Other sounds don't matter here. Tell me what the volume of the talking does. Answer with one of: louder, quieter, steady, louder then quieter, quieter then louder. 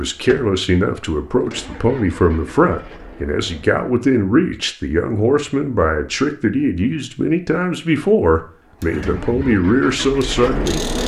steady.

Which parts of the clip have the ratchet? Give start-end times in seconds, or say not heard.
8.8-9.4, 10.2-11.0.